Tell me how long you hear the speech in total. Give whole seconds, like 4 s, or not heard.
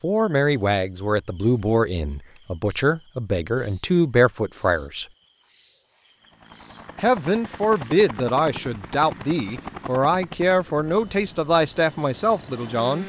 11 s.